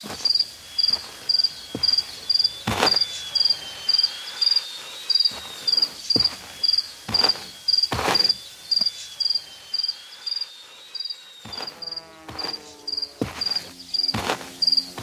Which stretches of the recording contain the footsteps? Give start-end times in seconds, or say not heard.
0.0-3.0, 4.8-8.8, 11.4-14.9.